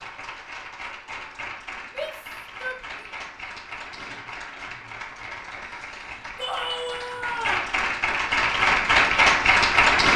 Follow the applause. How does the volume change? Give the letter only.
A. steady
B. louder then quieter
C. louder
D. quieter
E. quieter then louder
C.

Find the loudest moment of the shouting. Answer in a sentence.
The volume of the shouting peaks at 7 seconds.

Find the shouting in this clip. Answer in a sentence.
You can hear the shouting from 1.9 to 3.0 s and from 6.3 to 7.7 s.